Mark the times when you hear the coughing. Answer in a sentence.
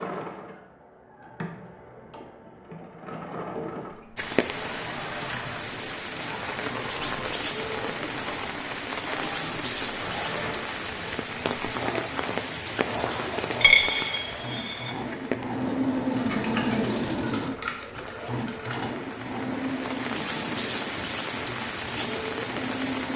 You can't hear the coughing here.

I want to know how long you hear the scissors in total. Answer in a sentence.
You can hear the scissors for 3 seconds altogether.